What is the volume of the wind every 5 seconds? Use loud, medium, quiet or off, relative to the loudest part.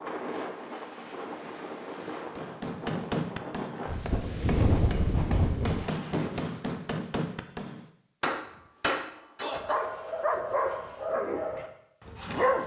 loud, loud, off.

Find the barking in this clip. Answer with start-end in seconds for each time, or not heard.
9.4-12.6.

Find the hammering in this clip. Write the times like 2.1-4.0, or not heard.
2.4-9.8.